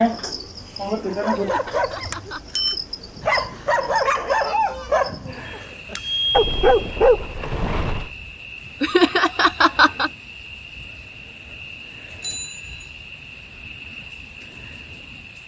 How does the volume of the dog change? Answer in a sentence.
The loudness of the dog goes up.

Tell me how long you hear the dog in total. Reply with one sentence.
You can hear the dog for 7 seconds altogether.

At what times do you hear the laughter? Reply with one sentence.
The laughter can be heard from 1.3 to 2.5 s and from 8.8 to 10.1 s.